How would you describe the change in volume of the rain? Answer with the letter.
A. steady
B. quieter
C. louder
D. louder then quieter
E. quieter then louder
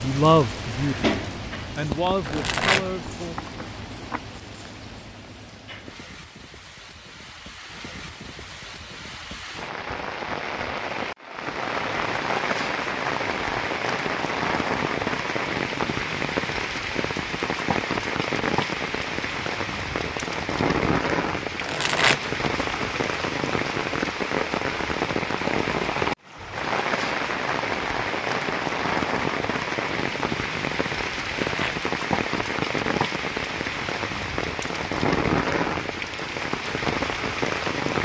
C.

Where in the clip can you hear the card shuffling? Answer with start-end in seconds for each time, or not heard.
2.2-4.2, 21.6-23.0, 31.1-31.8.